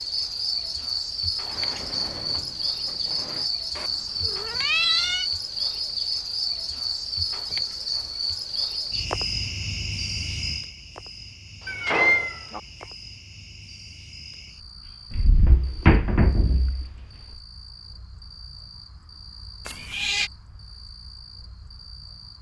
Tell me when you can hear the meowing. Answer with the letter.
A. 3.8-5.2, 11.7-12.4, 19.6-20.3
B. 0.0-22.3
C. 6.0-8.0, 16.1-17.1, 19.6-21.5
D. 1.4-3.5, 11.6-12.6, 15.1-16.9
A.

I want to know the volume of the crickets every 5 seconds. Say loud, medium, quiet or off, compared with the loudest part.
loud, loud, medium, quiet, quiet.